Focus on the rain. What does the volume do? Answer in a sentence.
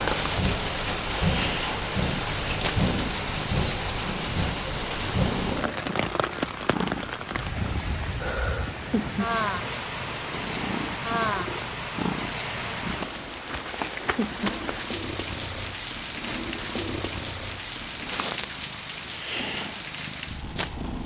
The volume of the rain goes down.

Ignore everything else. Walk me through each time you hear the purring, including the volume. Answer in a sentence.
The purring can be heard from 0.1 to 21.0 s, at a steady volume.